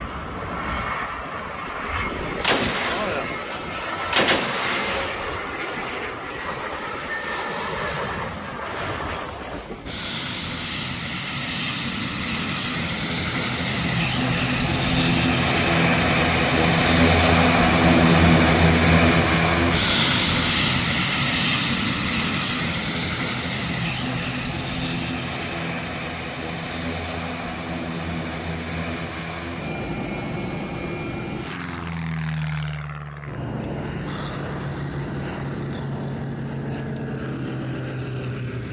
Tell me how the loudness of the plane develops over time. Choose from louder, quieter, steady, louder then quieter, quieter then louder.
louder then quieter.